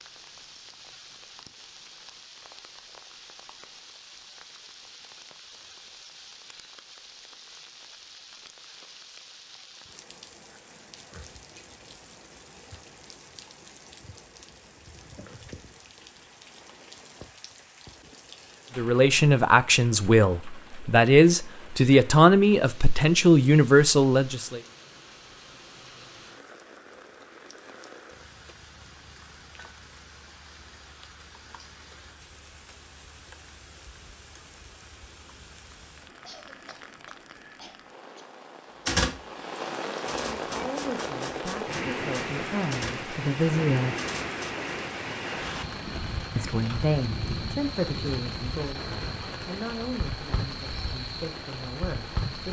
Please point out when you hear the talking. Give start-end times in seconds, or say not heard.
18.8-24.6, 40.2-44.0, 46.4-52.4.